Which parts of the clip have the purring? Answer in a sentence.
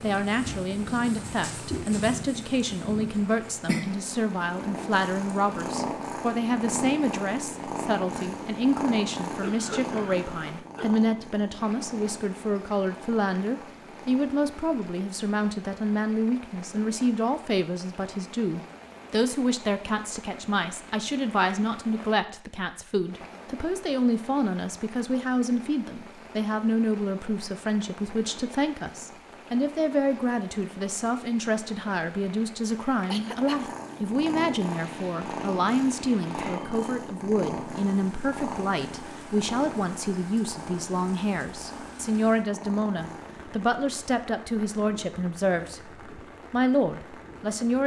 The purring can be heard from 0.0 to 14.7 s and from 33.2 to 43.6 s.